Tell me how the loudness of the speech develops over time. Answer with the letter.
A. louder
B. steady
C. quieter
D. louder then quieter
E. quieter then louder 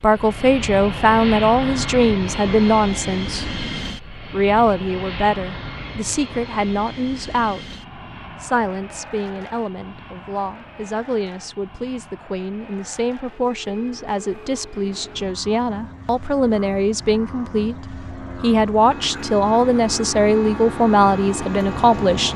E.